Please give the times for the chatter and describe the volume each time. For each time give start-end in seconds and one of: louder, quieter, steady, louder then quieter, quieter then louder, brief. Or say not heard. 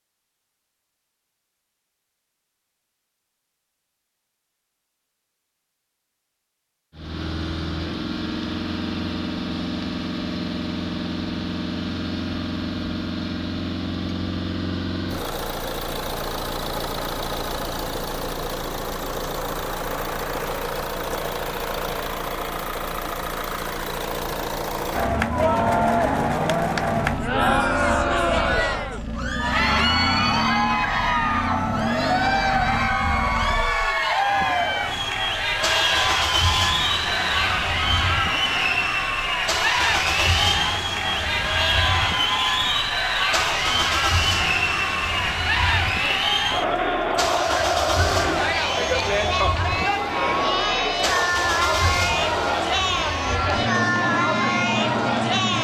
24.9-55.5 steady.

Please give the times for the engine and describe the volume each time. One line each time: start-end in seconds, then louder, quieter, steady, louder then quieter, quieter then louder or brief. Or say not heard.
7.0-55.5 steady.